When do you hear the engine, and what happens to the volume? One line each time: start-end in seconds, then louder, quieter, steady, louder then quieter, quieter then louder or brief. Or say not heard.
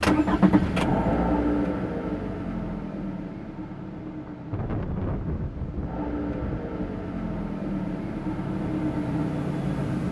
0.0-10.0 quieter then louder.